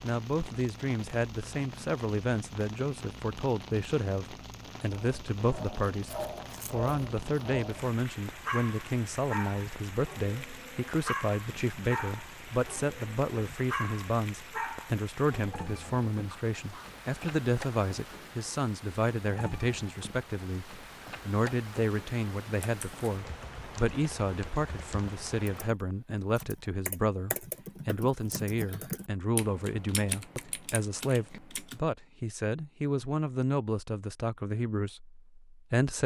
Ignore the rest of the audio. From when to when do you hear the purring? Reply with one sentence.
You can't hear the purring here.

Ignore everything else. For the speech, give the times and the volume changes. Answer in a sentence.
The speech can be heard from 0.0 to 36.0 s, at a steady volume.